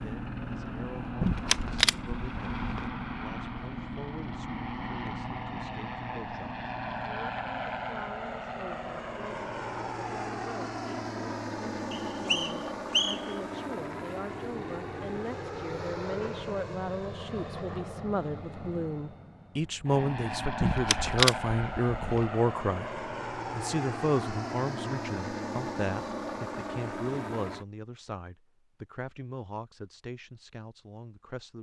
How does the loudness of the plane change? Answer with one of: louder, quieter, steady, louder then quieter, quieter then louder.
steady.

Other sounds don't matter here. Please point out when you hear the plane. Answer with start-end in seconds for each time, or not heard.
0.0-27.6.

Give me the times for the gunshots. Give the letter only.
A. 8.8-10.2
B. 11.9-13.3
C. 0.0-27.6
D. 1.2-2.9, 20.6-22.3
D.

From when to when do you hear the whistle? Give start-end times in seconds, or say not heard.
11.9-13.3.